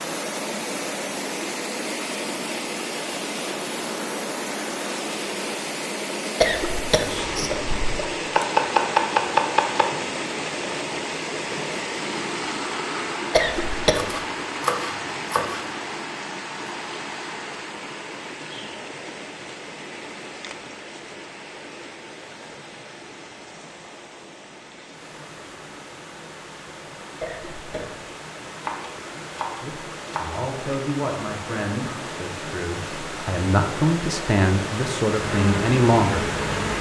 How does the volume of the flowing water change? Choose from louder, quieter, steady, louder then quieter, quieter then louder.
quieter then louder.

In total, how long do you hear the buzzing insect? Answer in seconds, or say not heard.
2 s.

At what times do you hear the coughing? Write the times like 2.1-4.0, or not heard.
6.4-8.0, 13.3-14.1, 27.2-27.9.